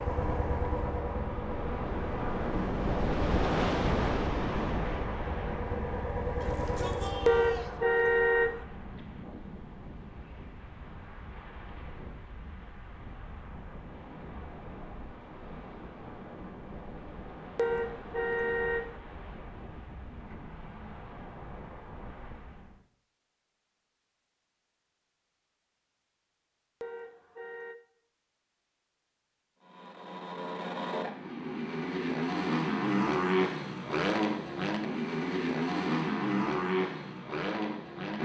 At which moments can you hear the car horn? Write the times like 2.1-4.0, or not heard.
7.2-8.6, 17.6-18.9, 26.8-27.8.